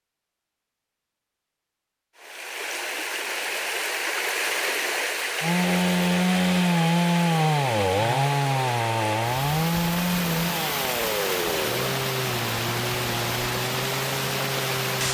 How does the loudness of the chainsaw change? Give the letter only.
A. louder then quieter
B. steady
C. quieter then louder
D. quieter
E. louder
D.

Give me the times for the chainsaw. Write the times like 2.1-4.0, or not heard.
5.4-15.0.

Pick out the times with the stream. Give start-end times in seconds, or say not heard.
2.1-15.0.